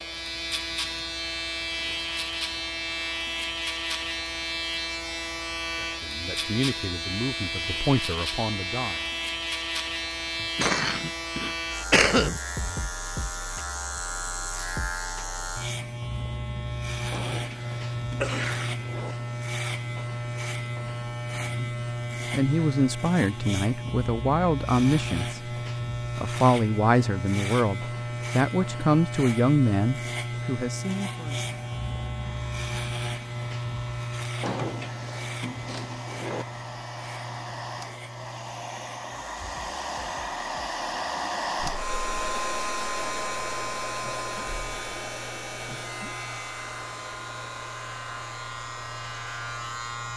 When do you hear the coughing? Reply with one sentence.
The coughing can be heard from 10.4 to 12.4 s, from 18.2 to 18.9 s and from 41.5 to 42.4 s.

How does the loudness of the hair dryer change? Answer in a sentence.
The loudness of the hair dryer goes up, then down.